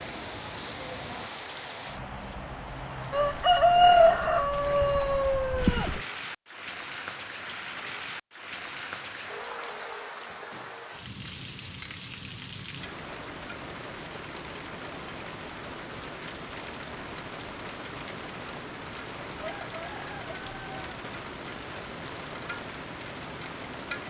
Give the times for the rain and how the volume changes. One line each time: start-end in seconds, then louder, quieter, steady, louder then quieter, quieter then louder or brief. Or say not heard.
0.0-24.0 steady.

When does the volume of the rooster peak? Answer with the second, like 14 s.
4 s.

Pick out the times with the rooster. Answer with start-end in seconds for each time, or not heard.
3.1-6.0, 19.4-20.9.